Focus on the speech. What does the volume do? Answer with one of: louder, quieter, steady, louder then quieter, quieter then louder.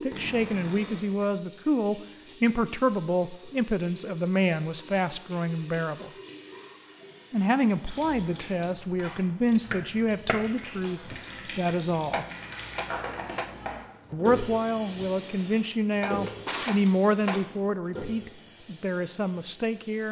steady.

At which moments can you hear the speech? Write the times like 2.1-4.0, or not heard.
0.0-6.1, 7.3-12.2, 14.1-20.0.